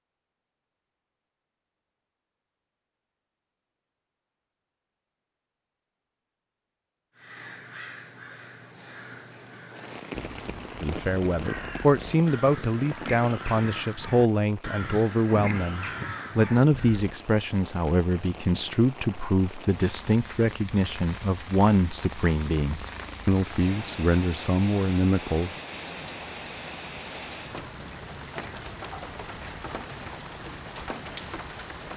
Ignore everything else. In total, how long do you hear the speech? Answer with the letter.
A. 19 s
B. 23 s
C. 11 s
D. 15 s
D.